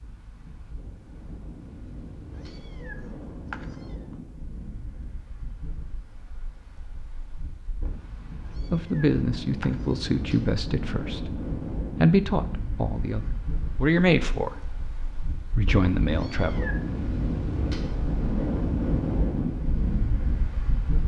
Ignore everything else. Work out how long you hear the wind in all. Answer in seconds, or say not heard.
21 s.